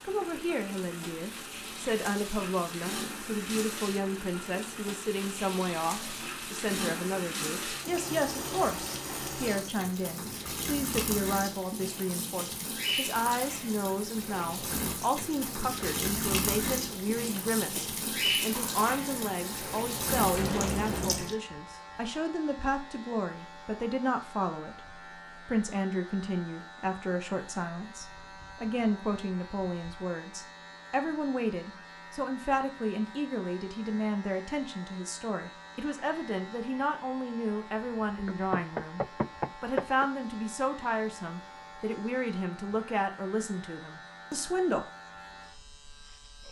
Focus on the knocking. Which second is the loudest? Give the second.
40 s.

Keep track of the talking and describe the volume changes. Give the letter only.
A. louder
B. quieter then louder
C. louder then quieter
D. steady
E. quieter
D.